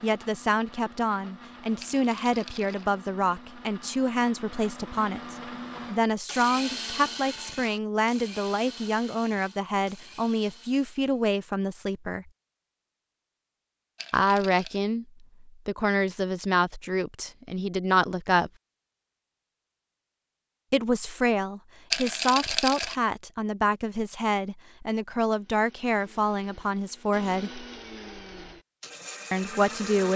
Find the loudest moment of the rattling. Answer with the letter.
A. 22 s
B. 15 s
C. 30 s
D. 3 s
A.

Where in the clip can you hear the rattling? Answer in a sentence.
The rattling can be heard from 1.8 to 2.9 s, from 13.9 to 14.8 s and from 21.9 to 22.9 s.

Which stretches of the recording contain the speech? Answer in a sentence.
The speech can be heard from 0.0 to 12.2 s, from 14.1 to 18.5 s, from 20.7 to 27.6 s and from 29.3 to 30.1 s.